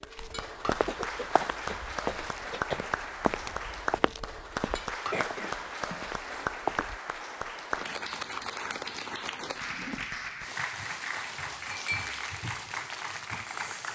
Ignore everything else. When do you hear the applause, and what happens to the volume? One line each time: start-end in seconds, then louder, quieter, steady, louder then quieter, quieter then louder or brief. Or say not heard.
0.0-13.9 steady.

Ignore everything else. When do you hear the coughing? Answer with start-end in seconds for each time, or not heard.
0.8-2.9, 5.1-6.5, 9.7-10.6.